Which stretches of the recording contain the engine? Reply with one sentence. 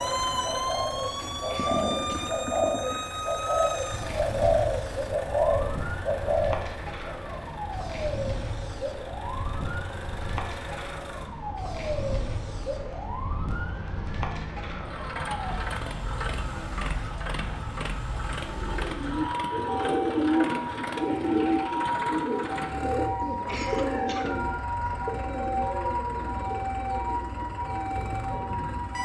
The engine can be heard from 0.0 to 29.0 s.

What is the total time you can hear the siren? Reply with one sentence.
The siren can be heard for 29 seconds in total.